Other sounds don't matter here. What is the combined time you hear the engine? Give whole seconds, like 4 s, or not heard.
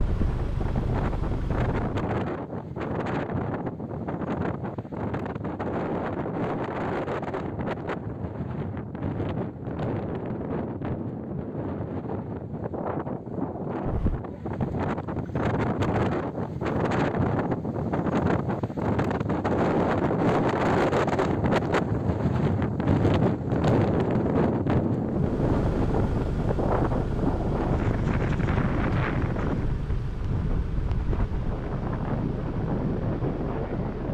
11 s.